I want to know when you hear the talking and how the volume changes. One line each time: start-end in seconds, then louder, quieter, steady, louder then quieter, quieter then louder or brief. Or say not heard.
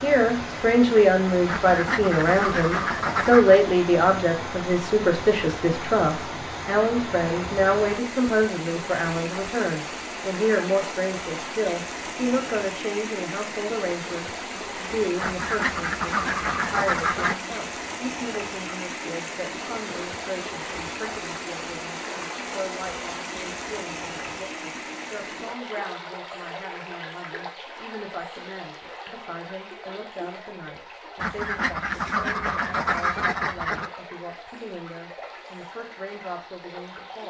0.0-37.2 quieter.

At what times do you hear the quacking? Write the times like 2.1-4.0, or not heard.
1.4-3.6, 15.2-17.4, 31.2-33.9.